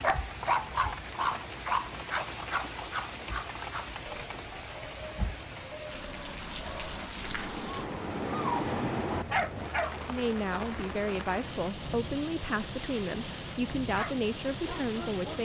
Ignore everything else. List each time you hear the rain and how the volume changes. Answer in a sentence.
The rain can be heard from 0.0 to 15.4 s, at a steady volume.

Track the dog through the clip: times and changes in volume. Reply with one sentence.
The dog can be heard from 0.0 to 9.9 s, getting quieter then louder; and briefly from 13.9 to 15.4 s.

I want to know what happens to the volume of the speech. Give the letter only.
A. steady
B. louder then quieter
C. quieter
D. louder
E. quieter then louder
A.